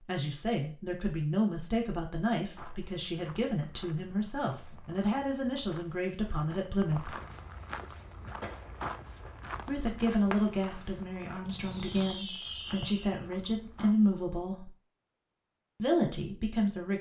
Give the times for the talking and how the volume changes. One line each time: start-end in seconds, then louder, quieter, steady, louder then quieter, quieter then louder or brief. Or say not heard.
0.0-7.2 steady
9.7-14.7 quieter then louder
15.8-16.9 brief.